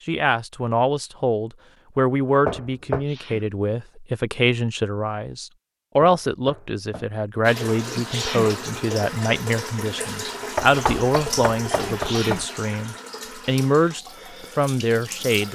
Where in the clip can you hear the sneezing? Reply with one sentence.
The sneezing can be heard from 2.9 to 3.5 s, from 7.8 to 8.5 s and from 11.8 to 12.4 s.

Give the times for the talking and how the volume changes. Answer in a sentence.
The talking can be heard from 0.1 to 15.5 s, at a steady volume.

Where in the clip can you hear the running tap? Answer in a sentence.
The running tap can be heard from 7.4 to 15.5 s.